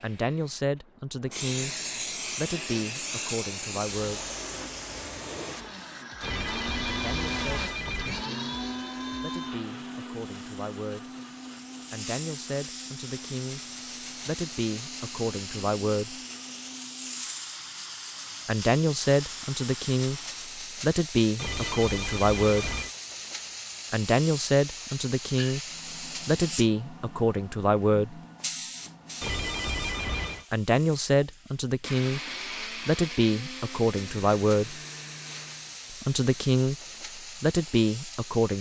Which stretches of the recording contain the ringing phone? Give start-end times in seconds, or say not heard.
6.2-8.2, 21.4-22.9, 29.2-30.4.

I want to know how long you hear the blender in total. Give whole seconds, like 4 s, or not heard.
23 s.